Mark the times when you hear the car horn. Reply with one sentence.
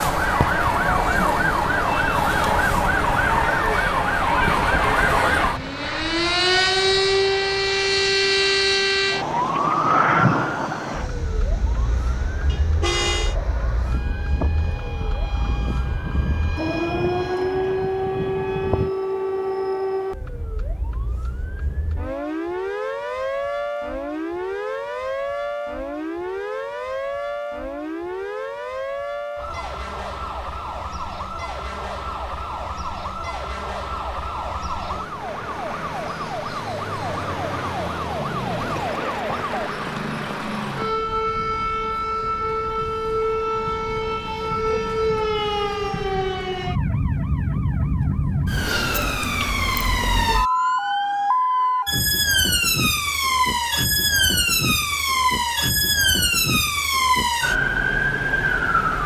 The car horn can be heard from 12.4 to 13.3 s.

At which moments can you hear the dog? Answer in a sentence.
You can't hear the dog here.